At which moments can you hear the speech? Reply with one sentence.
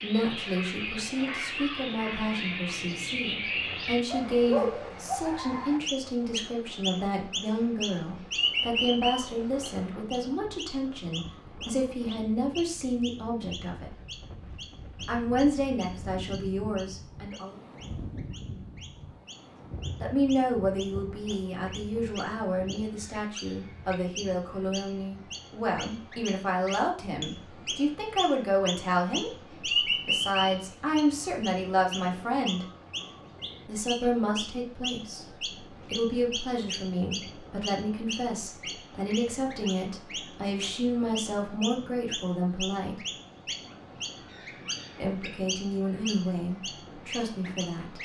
The speech can be heard from 0.0 to 13.9 s, from 15.1 to 17.6 s, from 20.0 to 32.6 s, from 33.6 to 43.0 s and from 45.0 to 48.0 s.